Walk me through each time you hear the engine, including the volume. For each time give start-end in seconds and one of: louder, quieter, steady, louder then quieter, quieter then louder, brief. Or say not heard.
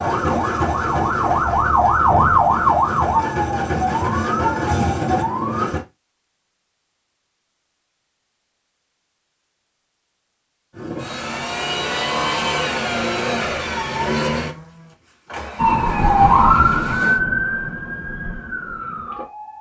0.0-5.8 quieter then louder
10.8-17.2 quieter.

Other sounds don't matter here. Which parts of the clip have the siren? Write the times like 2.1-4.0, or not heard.
0.0-5.7, 15.6-19.5.